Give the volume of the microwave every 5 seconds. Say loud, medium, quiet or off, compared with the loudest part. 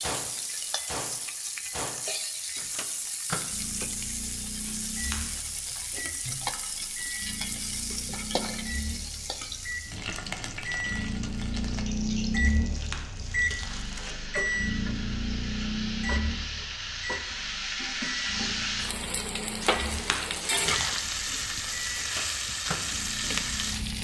medium, medium, loud, medium, medium.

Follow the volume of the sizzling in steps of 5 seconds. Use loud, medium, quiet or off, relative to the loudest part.
medium, medium, medium, loud, loud.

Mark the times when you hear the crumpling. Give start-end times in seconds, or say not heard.
4.6-5.4, 12.4-14.2, 19.6-21.0.